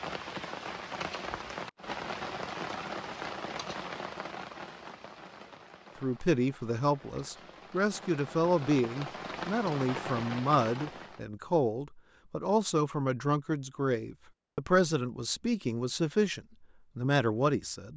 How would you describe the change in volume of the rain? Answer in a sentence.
The loudness of the rain goes down, then up.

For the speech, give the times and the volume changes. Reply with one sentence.
The speech can be heard from 6.0 to 17.9 s, at a steady volume.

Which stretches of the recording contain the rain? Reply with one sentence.
The rain can be heard from 0.0 to 11.2 s.